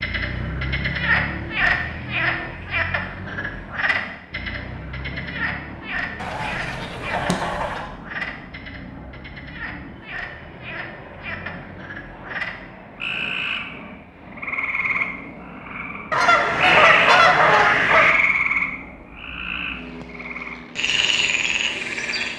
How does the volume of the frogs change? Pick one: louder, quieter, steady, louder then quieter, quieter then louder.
quieter then louder.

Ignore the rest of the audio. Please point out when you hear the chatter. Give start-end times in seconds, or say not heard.
not heard.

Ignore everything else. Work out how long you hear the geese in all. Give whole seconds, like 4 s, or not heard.
4 s.